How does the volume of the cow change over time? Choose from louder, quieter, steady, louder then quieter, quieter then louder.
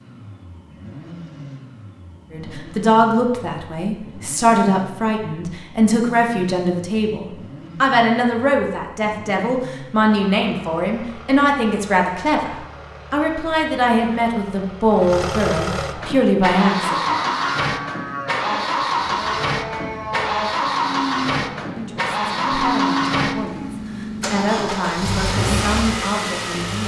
steady.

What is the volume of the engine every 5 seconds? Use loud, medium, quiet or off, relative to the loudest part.
quiet, quiet, quiet, loud, loud, loud.